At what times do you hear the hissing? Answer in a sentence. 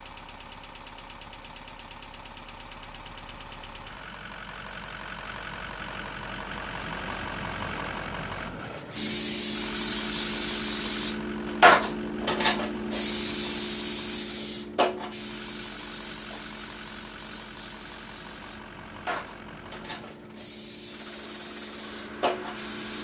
You can hear the hissing from 8.9 to 22.9 s.